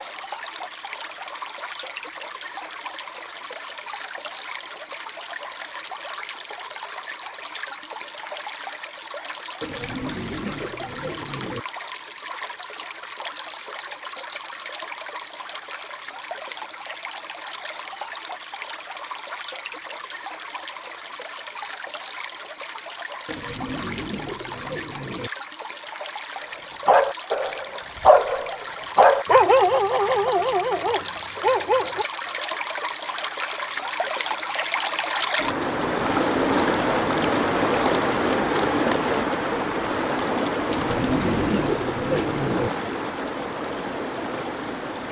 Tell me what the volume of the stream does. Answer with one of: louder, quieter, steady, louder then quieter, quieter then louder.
louder.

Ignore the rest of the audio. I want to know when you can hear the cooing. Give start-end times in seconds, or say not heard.
9.6-11.7, 23.2-25.3, 40.6-42.7.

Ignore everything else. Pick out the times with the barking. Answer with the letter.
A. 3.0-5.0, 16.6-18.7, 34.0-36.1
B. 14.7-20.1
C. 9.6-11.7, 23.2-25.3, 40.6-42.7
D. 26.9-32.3
D.